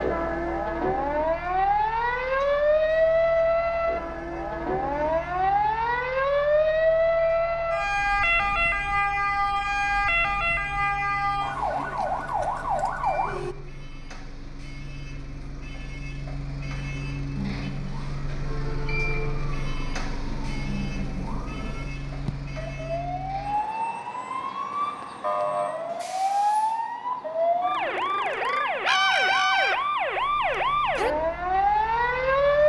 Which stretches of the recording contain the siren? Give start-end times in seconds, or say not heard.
0.0-13.6, 17.4-32.6.